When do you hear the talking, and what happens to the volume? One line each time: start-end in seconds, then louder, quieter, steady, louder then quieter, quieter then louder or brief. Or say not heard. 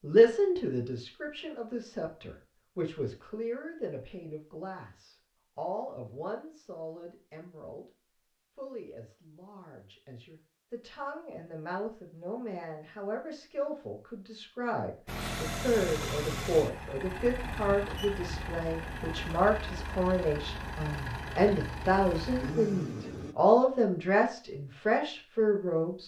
0.0-7.8 quieter
8.6-26.0 louder.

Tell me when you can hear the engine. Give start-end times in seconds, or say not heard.
15.1-23.4.